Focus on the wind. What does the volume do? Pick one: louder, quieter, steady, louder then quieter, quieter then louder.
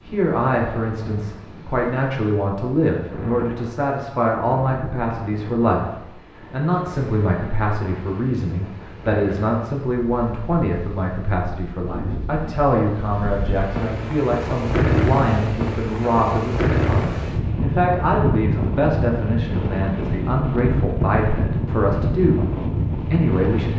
louder.